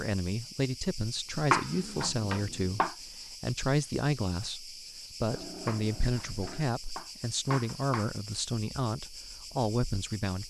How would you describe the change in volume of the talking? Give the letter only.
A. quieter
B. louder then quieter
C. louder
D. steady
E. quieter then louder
D.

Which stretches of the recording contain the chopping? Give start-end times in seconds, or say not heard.
1.5-3.0, 5.7-8.1.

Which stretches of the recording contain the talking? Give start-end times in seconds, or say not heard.
0.0-10.4.